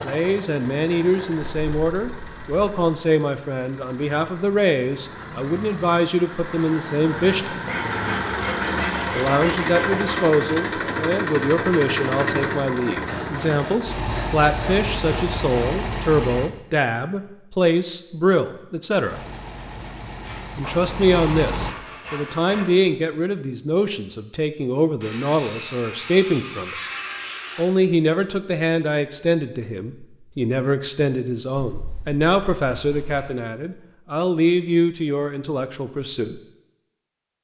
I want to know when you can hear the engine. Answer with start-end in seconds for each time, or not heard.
0.0-16.5, 19.1-21.8.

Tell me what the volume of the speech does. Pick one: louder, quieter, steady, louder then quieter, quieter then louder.
steady.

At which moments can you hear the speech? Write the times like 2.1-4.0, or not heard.
0.0-7.5, 9.2-19.2, 20.6-26.8, 27.6-36.4.